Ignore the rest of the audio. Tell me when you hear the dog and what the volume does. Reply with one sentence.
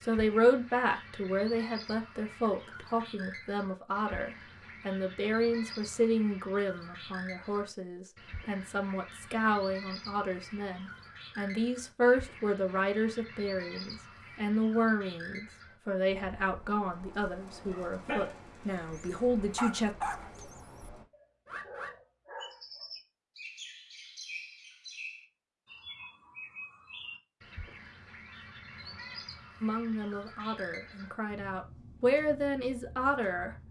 You can hear the dog from 17.6 to 22.9 s, getting quieter then louder.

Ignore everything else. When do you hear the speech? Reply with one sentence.
The speech can be heard from 0.0 to 19.9 s and from 29.6 to 33.5 s.